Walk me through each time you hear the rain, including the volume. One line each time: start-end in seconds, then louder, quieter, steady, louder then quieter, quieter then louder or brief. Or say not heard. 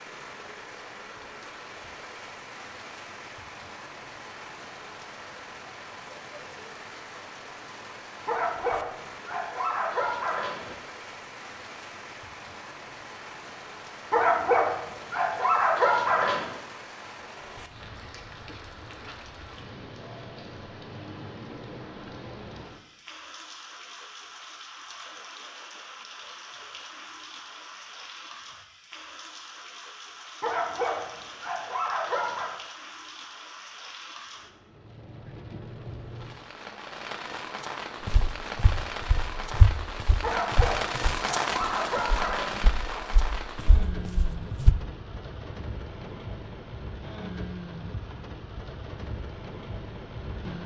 0.0-50.6 louder.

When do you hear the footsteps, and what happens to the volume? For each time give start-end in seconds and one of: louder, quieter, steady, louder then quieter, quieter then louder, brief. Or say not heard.
38.0-44.8 quieter.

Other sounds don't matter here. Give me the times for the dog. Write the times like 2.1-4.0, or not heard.
8.2-10.8, 14.1-16.6, 30.4-32.5, 40.2-43.0.